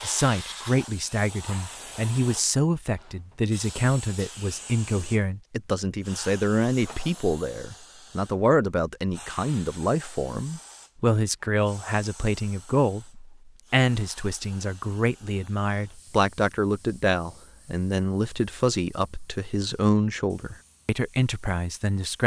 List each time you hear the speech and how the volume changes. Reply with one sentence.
The speech can be heard from 0.0 to 22.2 s, at a steady volume.